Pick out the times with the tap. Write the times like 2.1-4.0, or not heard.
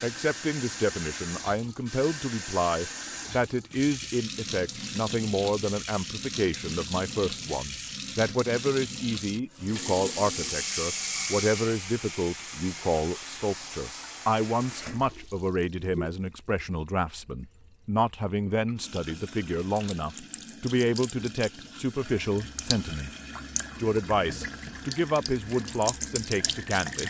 0.0-27.0.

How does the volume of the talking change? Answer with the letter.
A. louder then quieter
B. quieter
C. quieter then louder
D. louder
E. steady
E.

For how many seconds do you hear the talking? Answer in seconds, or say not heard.
26 s.